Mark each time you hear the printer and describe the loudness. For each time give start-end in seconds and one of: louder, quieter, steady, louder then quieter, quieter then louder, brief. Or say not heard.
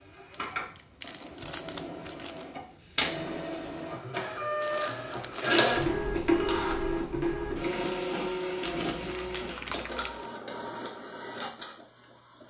0.0-12.4 louder then quieter.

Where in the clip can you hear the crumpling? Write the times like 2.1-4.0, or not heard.
0.3-2.5, 4.6-6.0, 8.7-10.3.